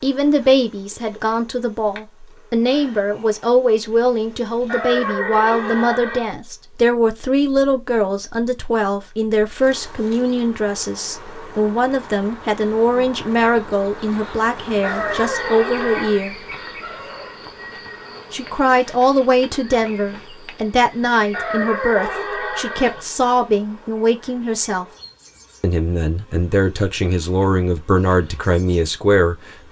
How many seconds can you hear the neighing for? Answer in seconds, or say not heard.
5 s.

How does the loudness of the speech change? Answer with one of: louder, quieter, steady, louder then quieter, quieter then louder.
steady.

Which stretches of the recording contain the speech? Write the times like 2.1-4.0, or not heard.
0.0-16.4, 18.3-24.9, 25.6-29.4.